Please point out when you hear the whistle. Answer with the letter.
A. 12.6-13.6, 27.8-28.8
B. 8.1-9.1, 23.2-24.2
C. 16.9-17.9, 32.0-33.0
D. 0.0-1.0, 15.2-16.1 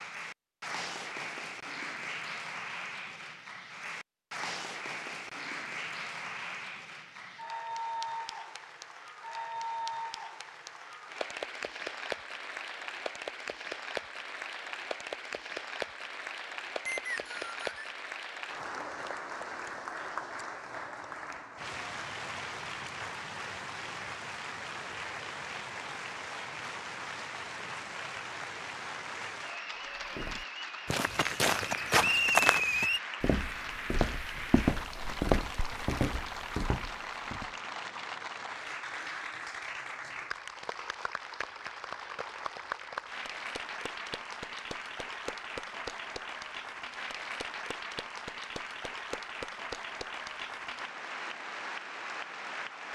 C.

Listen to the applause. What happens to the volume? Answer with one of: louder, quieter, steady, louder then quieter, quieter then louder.
steady.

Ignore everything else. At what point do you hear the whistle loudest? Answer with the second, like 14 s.
32 s.